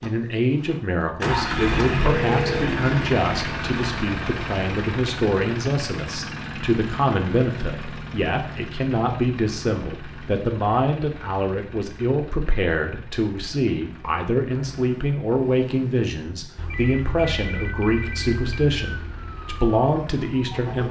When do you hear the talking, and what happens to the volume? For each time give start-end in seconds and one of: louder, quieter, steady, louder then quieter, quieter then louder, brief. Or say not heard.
0.0-20.8 steady.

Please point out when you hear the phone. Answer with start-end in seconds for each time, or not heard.
2.1-2.7, 16.7-18.7.